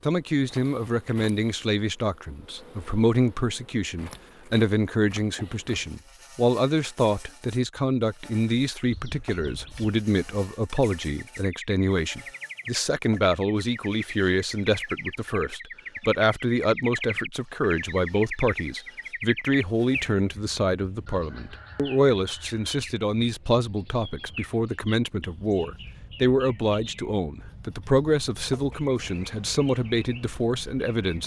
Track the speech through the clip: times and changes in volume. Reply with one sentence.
The speech can be heard from 0.0 to 31.2 s, at a steady volume.